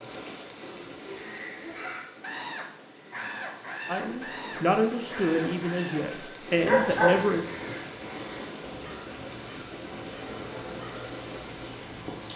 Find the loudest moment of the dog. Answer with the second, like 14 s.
7 s.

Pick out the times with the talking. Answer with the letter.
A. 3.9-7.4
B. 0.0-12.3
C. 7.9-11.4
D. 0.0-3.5
A.